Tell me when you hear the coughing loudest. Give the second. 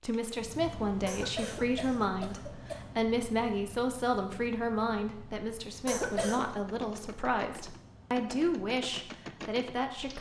6 s.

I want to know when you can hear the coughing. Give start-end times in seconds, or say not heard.
1.1-2.9, 5.8-6.5.